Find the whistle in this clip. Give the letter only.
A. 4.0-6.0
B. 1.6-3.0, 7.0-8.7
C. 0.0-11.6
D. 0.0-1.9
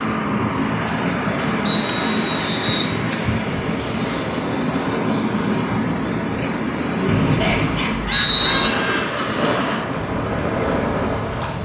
B.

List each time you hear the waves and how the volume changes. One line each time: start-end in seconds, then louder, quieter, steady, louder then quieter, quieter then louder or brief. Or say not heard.
0.0-11.6 steady.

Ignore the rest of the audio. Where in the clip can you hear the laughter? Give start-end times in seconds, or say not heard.
7.2-9.2.